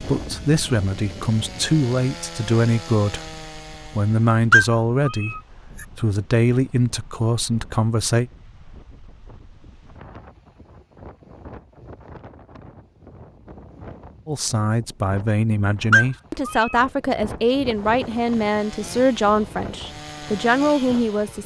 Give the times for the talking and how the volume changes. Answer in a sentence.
You can hear the talking from 0.0 to 8.3 s, at a steady volume; and from 14.2 to 21.4 s, at a steady volume.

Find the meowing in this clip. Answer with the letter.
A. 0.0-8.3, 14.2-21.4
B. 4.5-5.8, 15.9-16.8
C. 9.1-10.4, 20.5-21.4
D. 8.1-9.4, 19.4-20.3
B.